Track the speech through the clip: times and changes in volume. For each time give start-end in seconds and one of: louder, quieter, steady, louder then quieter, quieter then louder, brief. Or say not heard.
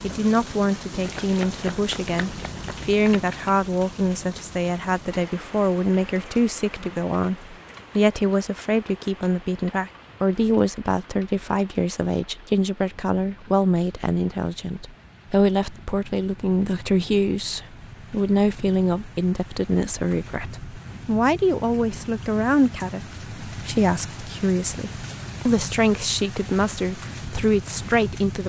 0.0-28.4 steady.